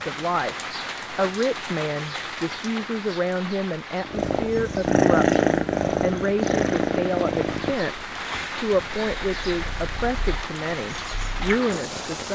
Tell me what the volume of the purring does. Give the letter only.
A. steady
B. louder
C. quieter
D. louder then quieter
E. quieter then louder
E.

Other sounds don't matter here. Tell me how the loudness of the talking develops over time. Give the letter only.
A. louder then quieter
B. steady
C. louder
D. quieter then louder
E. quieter
B.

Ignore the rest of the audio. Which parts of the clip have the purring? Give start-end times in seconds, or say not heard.
4.0-12.3.